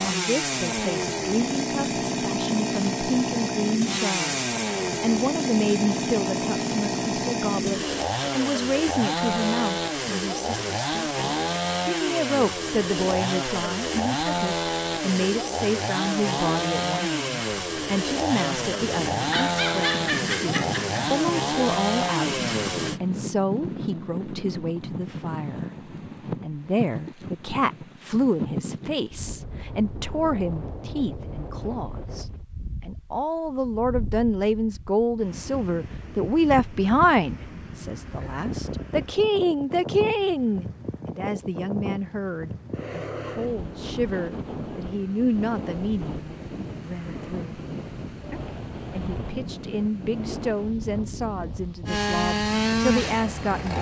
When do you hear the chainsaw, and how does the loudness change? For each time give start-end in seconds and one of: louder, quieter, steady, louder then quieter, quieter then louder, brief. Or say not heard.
0.0-23.0 steady
51.9-53.7 brief.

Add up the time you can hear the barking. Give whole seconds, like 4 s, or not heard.
2 s.